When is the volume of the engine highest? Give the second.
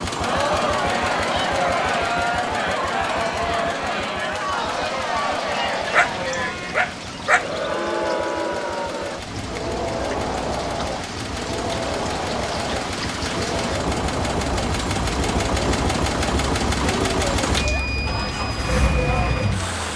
17 s.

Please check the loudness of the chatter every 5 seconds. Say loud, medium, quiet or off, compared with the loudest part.
loud, loud, medium, medium.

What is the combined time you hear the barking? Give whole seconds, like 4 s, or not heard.
2 s.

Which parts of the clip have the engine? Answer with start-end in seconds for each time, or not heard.
0.0-19.9.